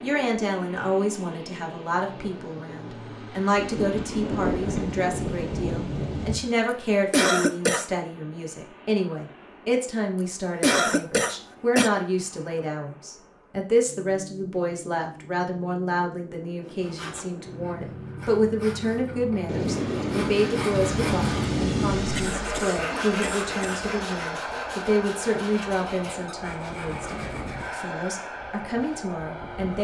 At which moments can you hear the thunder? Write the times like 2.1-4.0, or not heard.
3.5-6.4, 19.4-22.4.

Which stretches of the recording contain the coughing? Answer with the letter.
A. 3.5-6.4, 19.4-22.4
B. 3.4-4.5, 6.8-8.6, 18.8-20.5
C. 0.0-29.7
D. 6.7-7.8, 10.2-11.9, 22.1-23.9
D.